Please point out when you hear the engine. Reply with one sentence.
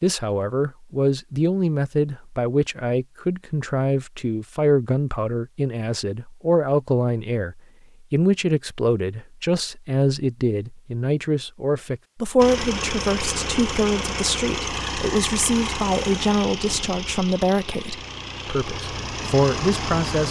You can hear the engine from 12.3 to 20.2 s.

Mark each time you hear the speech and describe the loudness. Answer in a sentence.
The speech can be heard from 0.0 to 20.2 s, at a steady volume.